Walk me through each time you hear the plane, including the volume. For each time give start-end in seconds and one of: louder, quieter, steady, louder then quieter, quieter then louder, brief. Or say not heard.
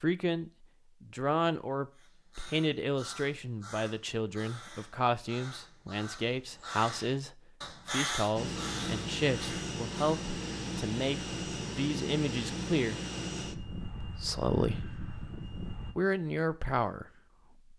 8.3-15.9 quieter.